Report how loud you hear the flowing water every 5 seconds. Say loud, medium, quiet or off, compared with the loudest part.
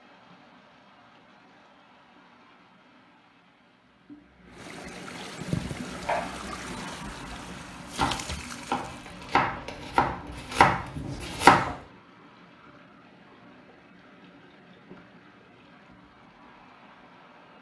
quiet, loud, quiet, quiet.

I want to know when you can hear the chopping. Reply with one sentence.
The chopping can be heard from 5.7 to 11.8 s.